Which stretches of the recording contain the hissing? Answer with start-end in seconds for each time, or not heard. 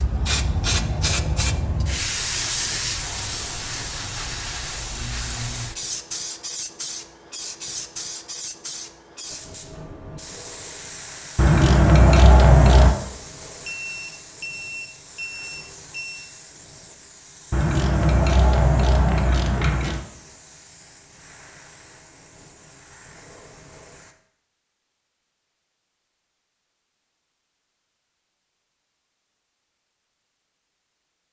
0.0-24.1.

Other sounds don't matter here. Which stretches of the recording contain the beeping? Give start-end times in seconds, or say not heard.
13.6-16.4.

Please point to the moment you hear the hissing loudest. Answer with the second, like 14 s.
1 s.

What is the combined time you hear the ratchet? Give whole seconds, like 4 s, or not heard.
4 s.